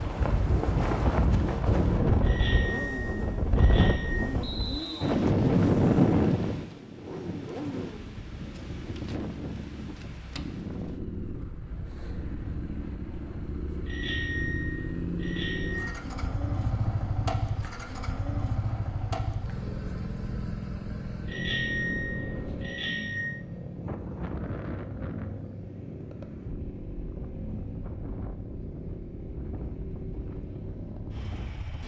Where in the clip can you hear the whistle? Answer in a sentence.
The whistle can be heard from 4.4 to 5.2 s.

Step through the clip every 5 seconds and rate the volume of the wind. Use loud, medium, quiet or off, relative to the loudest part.
loud, loud, quiet, quiet, quiet, quiet, quiet.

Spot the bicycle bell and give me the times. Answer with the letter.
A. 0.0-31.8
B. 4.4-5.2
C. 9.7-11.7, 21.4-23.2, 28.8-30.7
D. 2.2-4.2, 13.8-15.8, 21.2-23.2
D.